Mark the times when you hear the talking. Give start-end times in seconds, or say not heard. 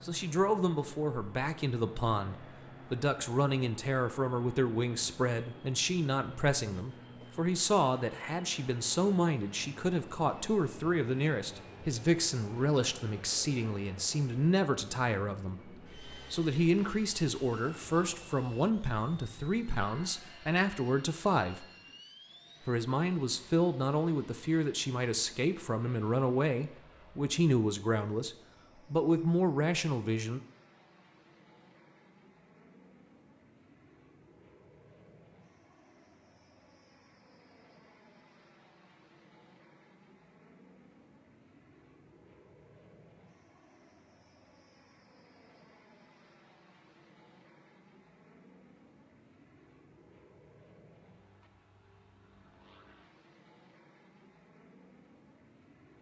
0.0-21.6, 22.6-30.4.